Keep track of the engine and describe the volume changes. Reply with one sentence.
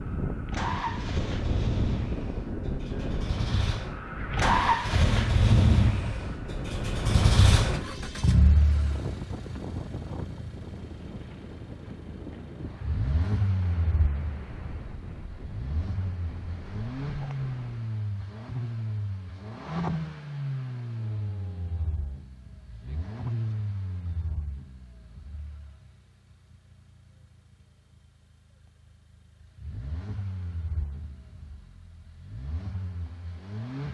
The loudness of the engine goes down.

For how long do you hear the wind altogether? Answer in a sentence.
The wind can be heard for 18 seconds in total.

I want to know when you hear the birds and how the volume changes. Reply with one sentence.
You can't hear the birds here.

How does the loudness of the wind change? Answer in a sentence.
The volume of the wind goes down.